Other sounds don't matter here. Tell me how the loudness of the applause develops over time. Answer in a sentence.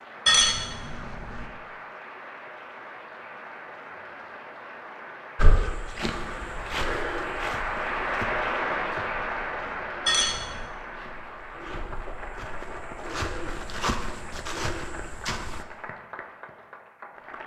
The loudness of the applause goes up, then down.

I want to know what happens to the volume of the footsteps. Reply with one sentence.
The volume of the footsteps goes down, then up.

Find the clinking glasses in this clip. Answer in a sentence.
You can hear the clinking glasses from 0.2 to 1.4 s and from 10.1 to 10.7 s.